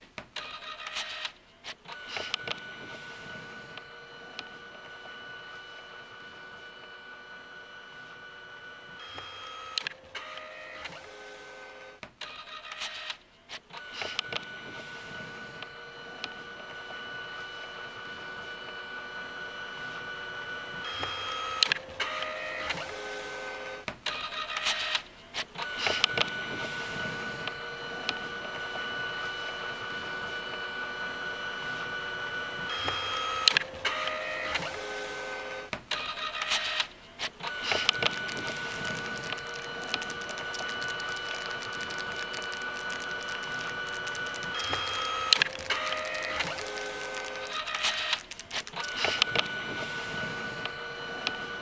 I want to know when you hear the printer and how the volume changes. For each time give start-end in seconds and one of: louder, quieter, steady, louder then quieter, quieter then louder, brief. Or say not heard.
0.0-51.5 louder.